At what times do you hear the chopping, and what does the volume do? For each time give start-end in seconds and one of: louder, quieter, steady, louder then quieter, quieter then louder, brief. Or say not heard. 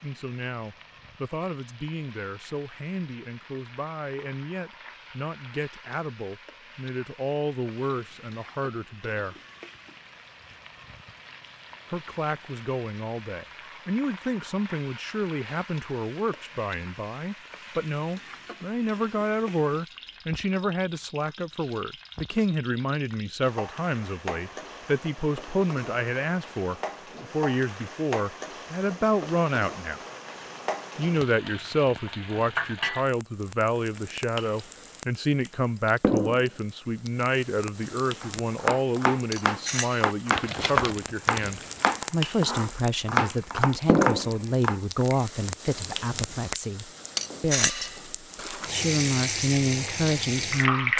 38.2-45.0 steady.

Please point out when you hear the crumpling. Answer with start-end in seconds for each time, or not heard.
40.3-41.9.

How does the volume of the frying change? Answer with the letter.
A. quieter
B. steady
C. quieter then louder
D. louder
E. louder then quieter
D.